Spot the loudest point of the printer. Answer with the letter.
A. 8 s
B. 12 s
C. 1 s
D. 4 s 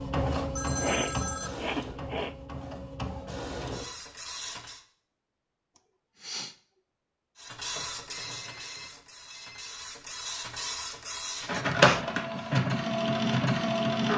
B.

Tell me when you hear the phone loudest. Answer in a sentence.
The loudest moment of the phone is at 1 second.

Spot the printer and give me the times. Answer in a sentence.
You can hear the printer from 0.0 to 4.8 s and from 7.3 to 14.1 s.